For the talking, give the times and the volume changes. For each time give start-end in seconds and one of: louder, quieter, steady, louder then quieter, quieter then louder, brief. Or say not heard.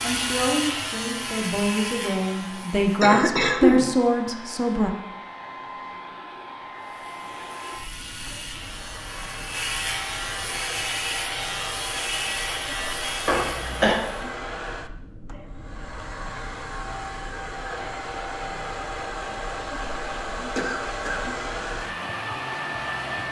0.0-4.9 louder.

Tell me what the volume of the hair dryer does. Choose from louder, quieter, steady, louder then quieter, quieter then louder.
louder.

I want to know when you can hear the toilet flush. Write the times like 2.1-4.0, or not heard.
not heard.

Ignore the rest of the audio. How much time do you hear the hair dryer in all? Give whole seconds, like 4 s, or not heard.
23 s.